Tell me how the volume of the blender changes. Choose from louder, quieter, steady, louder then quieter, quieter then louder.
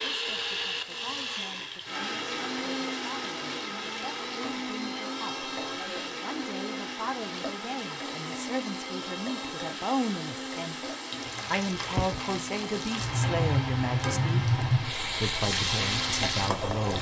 quieter.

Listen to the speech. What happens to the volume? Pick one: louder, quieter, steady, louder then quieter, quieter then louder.
louder.